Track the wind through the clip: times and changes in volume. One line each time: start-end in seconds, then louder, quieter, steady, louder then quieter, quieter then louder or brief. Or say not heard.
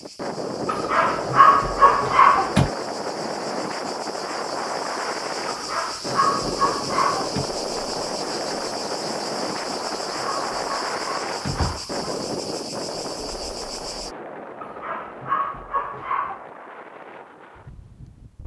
0.0-18.4 quieter.